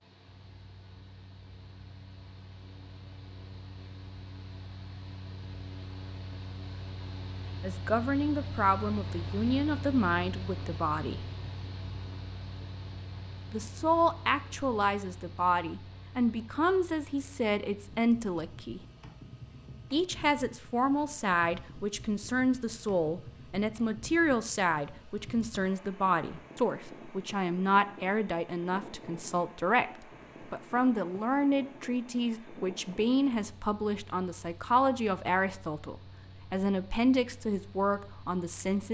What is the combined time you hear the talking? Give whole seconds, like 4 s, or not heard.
28 s.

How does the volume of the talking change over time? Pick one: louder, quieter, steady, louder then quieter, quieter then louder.
steady.